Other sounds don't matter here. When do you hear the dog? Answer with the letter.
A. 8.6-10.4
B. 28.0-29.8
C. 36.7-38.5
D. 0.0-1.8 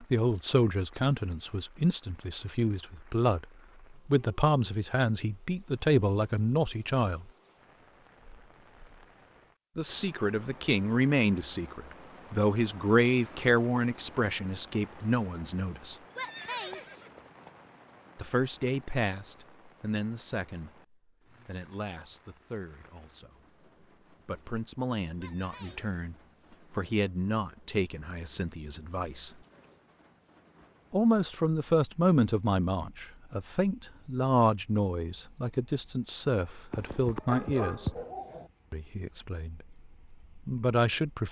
C.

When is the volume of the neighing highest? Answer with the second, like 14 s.
17 s.